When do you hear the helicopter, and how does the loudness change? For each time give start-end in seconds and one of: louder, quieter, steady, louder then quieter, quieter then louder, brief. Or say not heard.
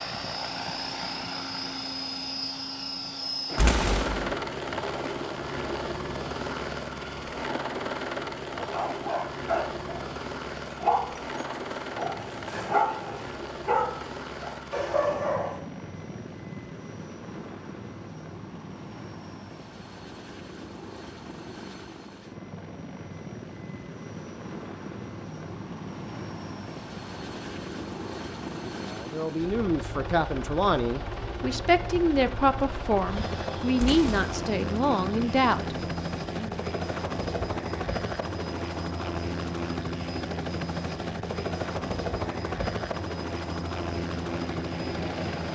0.0-45.4 quieter then louder.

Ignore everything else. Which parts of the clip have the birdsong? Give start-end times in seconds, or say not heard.
not heard.